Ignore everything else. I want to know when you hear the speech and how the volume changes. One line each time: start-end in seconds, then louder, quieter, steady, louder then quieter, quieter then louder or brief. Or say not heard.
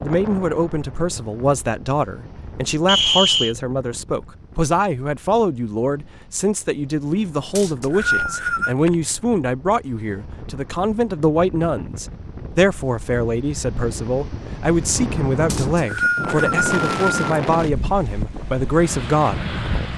0.0-19.9 steady.